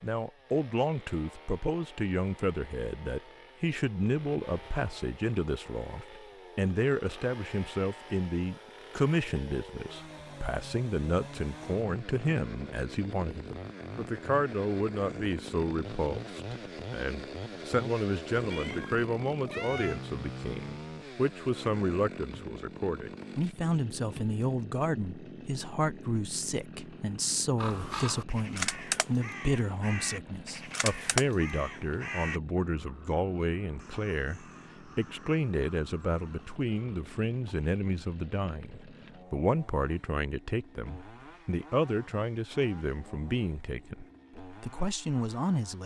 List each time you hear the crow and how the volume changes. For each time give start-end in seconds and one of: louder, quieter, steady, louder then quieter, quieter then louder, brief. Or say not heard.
27.6-37.0 quieter.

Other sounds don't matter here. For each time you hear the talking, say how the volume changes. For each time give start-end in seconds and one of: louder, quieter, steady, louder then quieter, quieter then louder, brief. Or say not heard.
0.0-45.8 steady.